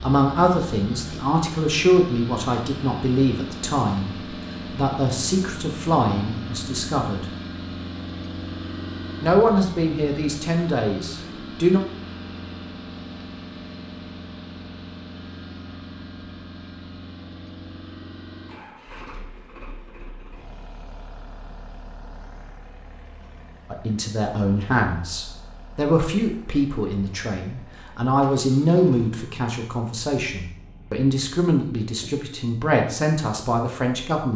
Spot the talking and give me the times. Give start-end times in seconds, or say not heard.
0.0-7.2, 9.2-11.8, 23.7-34.3.